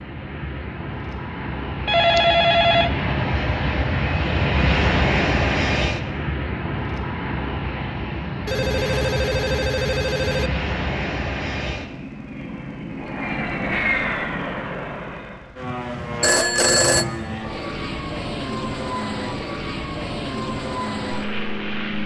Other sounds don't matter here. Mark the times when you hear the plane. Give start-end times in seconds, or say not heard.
0.0-22.0.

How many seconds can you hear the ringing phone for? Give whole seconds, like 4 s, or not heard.
4 s.